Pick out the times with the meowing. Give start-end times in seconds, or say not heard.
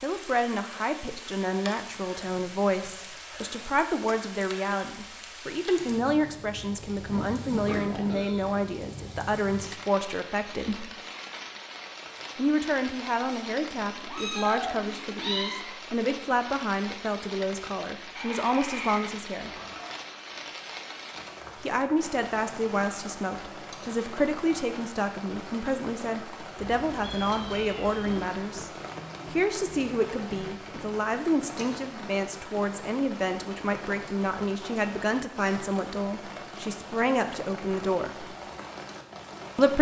13.2-15.6, 26.6-28.2.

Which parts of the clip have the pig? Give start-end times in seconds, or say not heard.
7.0-8.6, 18.1-20.0, 28.4-31.0.